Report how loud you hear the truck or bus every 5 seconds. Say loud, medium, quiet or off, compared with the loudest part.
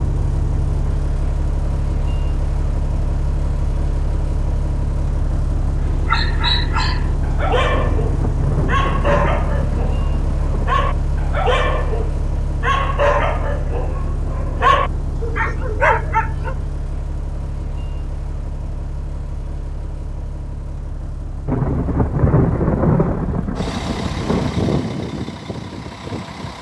loud, loud, loud, medium, loud, loud.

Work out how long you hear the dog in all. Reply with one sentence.
The dog can be heard for 11 seconds in total.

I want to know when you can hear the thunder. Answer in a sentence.
You can hear the thunder from 7.7 to 10.7 s and from 21.4 to 24.6 s.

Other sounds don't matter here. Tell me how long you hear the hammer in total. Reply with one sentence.
You can't hear the hammer here.